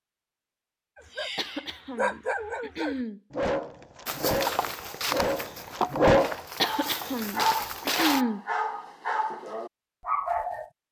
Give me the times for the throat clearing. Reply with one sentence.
The throat clearing can be heard from 1.4 to 3.2 s and from 6.6 to 8.4 s.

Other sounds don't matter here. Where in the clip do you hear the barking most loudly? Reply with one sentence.
The loudest moment of the barking is at 6 seconds.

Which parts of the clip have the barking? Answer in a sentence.
You can hear the barking from 0.9 to 10.7 s.